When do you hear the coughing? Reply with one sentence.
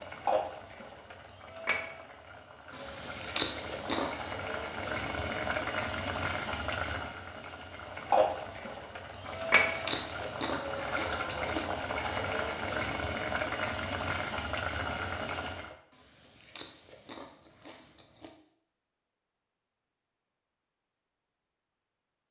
The coughing can't be heard in this clip.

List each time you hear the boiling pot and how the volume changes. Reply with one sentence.
The boiling pot can be heard from 0.0 to 15.8 s, getting louder.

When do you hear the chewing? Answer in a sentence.
The chewing can be heard from 2.7 to 4.3 s, from 9.2 to 11.7 s and from 15.9 to 18.3 s.